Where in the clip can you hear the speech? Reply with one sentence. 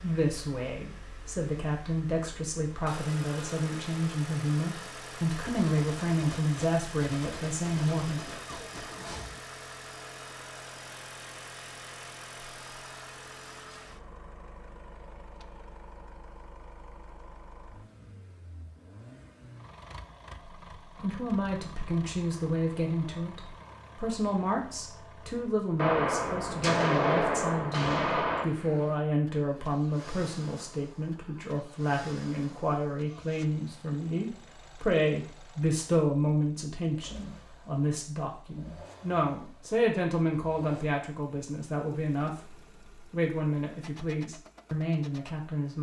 You can hear the speech from 0.0 to 8.2 s and from 21.0 to 45.7 s.